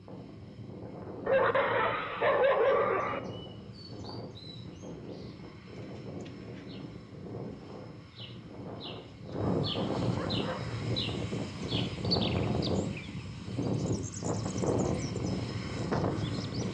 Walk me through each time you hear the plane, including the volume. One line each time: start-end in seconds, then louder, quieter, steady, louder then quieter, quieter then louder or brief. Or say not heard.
0.0-16.6 louder.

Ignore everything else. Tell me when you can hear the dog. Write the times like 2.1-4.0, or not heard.
1.2-3.2, 9.3-10.8.